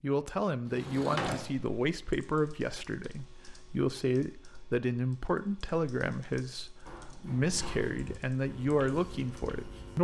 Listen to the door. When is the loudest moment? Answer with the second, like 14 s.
1 s.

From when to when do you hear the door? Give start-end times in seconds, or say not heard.
0.7-1.5, 6.8-8.0.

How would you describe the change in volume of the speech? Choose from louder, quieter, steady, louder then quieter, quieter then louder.
steady.